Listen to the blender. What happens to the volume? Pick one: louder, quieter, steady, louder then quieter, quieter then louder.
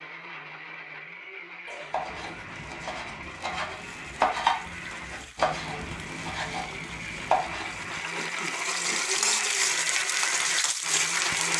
louder.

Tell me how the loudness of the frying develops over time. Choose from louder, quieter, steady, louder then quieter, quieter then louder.
louder.